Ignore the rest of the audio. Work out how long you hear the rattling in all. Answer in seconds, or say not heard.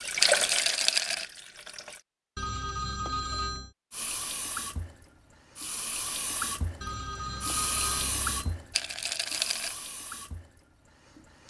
2 s.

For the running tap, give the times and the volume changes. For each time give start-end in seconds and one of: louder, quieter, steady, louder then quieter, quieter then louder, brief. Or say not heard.
0.0-2.0 brief
3.9-11.4 louder then quieter.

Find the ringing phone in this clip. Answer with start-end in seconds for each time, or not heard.
2.4-3.7, 6.8-8.6.